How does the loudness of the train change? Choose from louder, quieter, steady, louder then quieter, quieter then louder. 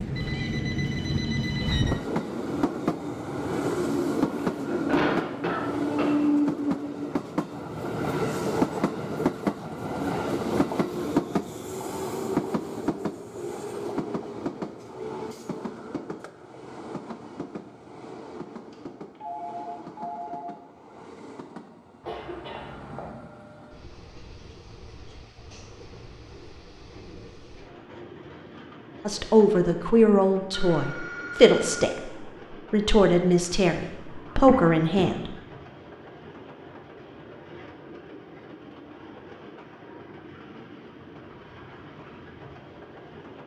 quieter.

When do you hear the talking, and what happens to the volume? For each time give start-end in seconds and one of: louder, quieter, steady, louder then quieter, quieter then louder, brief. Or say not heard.
29.1-35.3 quieter then louder.